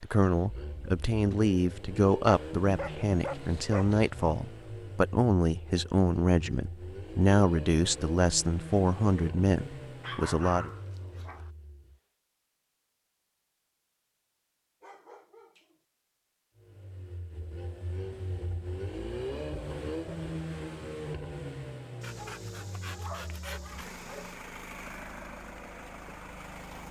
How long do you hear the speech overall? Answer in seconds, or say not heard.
11 s.